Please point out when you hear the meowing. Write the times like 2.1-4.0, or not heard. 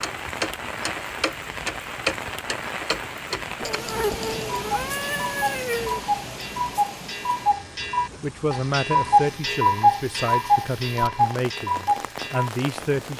3.6-6.0.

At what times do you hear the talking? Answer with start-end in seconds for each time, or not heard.
8.2-13.1.